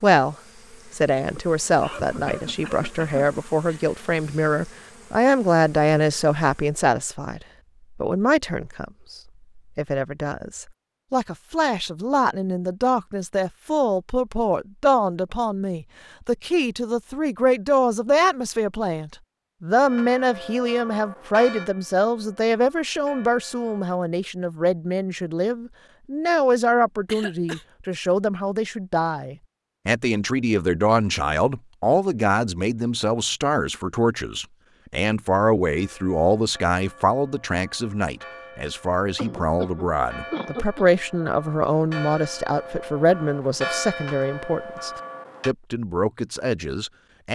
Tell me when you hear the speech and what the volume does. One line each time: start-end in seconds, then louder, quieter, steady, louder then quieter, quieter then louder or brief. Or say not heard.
0.0-47.2 steady.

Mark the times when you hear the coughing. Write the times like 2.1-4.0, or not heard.
1.4-3.2, 27.1-27.6, 39.1-40.9.